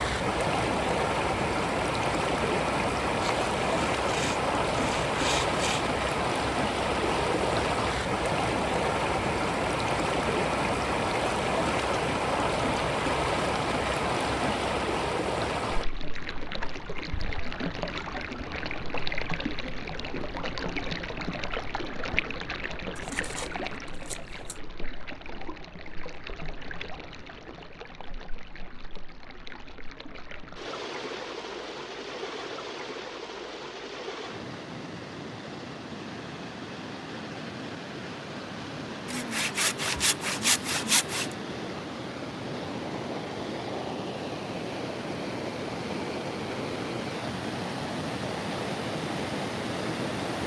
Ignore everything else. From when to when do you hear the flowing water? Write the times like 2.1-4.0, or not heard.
0.0-50.4.